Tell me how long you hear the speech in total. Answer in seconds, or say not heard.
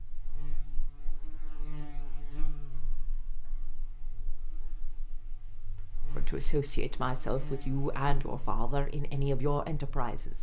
4 s.